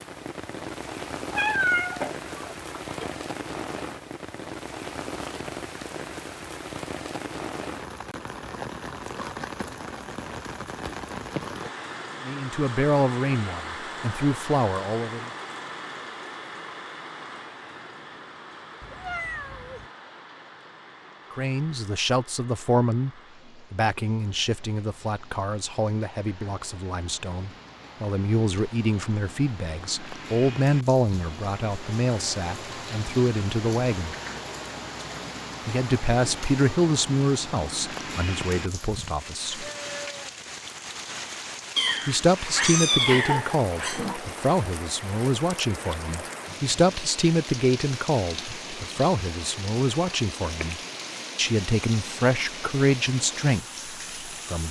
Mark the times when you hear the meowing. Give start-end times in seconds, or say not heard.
1.3-3.1, 18.8-19.9, 41.8-44.2.